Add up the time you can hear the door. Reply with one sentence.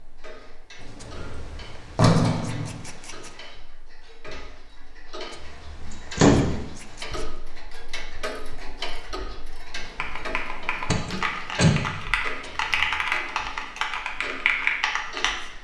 The door can be heard for 4 seconds in total.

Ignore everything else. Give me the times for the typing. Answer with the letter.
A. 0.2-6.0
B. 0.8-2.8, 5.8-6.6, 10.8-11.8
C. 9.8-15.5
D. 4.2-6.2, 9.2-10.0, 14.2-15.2
C.